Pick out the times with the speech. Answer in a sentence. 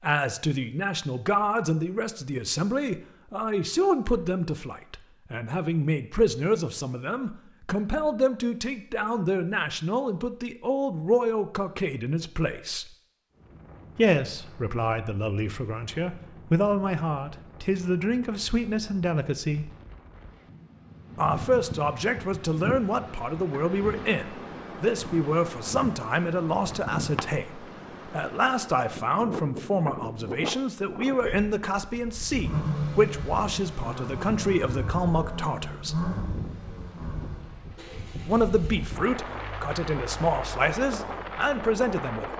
The speech can be heard from 0.0 to 12.8 s, from 13.9 to 19.7 s, from 21.1 to 36.0 s and from 38.2 to 42.3 s.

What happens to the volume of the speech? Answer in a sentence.
The loudness of the speech stays about the same.